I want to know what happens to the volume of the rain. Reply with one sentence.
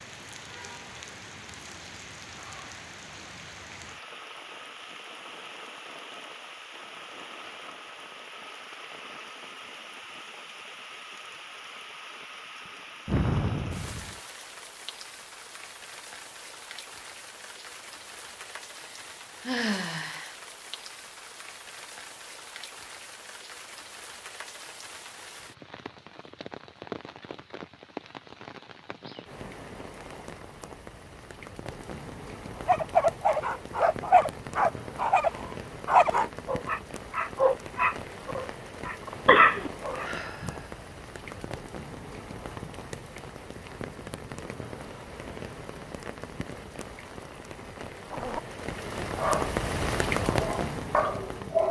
The volume of the rain goes up.